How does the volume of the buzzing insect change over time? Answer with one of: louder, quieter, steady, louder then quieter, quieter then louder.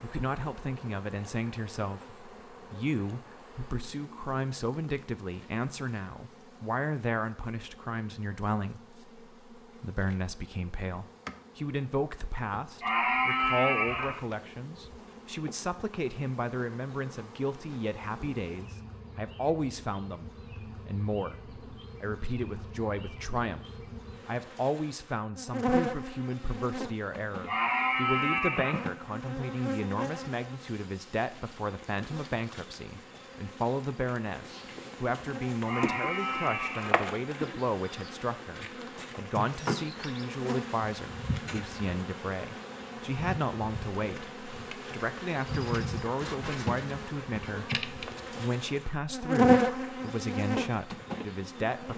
louder.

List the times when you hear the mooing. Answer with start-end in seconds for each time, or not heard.
12.8-14.2, 27.4-28.9, 35.6-37.0.